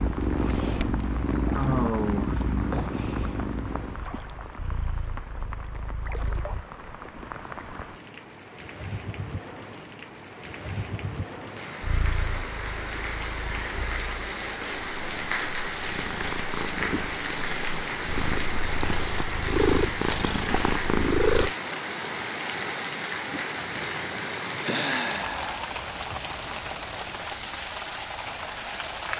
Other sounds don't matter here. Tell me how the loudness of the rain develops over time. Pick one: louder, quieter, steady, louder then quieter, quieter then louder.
louder.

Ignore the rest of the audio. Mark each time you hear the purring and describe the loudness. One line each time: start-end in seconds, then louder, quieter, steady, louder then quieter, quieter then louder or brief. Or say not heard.
0.0-6.7 quieter
11.8-21.6 louder.